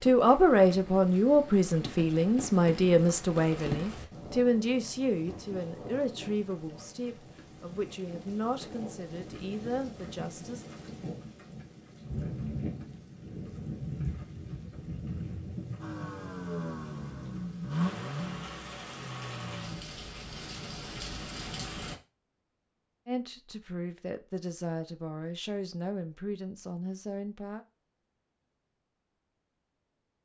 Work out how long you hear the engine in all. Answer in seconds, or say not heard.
4 s.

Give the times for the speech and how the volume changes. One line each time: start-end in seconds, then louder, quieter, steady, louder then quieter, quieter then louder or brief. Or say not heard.
0.0-10.7 quieter
23.1-27.6 steady.